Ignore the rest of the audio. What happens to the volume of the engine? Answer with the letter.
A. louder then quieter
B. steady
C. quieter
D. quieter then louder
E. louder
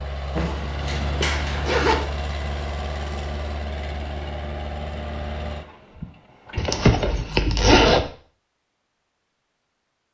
C.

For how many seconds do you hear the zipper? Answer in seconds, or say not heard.
3 s.